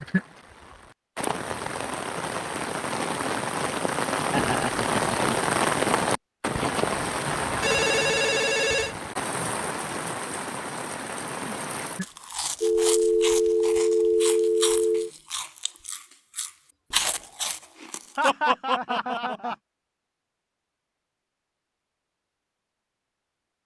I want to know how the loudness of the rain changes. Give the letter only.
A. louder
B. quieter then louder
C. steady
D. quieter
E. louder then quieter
E.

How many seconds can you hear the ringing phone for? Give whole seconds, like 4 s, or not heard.
4 s.